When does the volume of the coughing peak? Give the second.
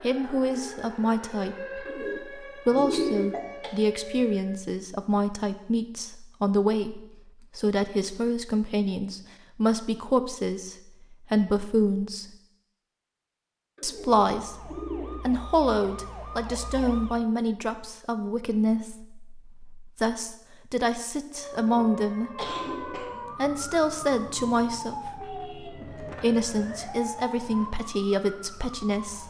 23 s.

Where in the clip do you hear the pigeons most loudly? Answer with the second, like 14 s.
3 s.